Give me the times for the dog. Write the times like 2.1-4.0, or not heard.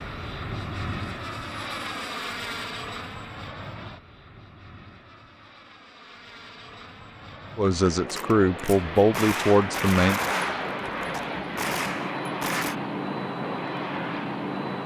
not heard.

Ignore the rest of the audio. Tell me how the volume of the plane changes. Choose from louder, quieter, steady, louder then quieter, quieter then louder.
quieter then louder.